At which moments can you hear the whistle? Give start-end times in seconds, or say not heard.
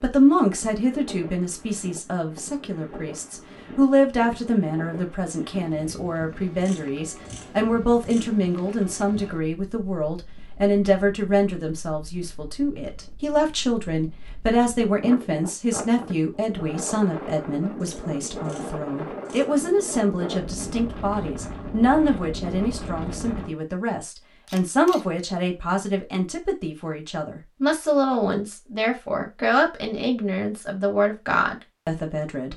not heard.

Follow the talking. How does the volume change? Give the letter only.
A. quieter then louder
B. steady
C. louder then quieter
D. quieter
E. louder
B.